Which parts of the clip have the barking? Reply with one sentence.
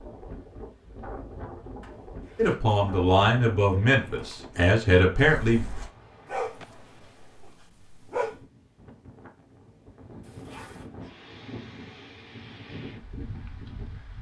You can hear the barking from 6.3 to 8.3 s.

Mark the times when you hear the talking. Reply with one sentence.
You can hear the talking from 2.4 to 5.7 s.